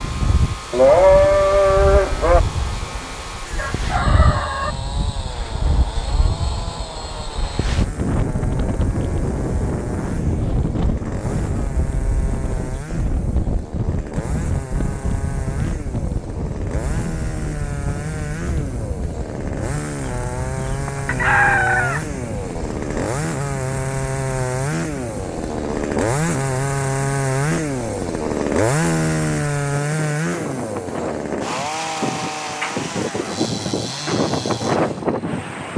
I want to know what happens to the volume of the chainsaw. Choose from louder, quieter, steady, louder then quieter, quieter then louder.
louder.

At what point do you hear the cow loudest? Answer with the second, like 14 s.
1 s.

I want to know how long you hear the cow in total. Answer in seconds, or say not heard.
2 s.